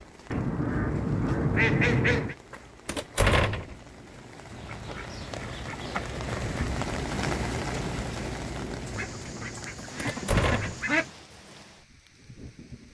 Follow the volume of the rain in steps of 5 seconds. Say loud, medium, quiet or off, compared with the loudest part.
quiet, loud, quiet.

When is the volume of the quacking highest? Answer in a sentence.
The volume of the quacking peaks at 2 seconds.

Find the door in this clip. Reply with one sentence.
You can hear the door from 2.9 to 3.8 s and from 9.9 to 10.8 s.